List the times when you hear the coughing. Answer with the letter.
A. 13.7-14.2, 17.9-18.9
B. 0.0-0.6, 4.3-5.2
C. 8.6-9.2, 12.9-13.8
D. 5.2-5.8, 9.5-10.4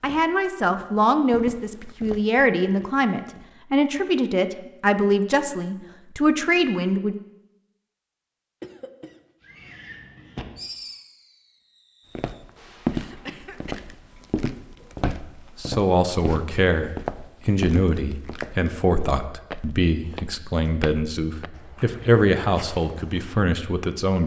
C.